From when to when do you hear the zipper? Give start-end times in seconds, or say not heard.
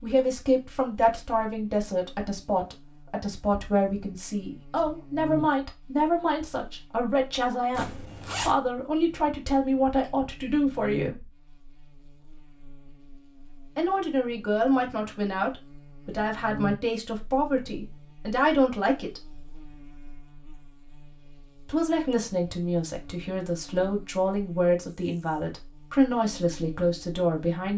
7.7-8.6.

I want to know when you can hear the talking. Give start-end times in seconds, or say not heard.
0.0-11.3, 13.8-19.2, 21.6-27.7.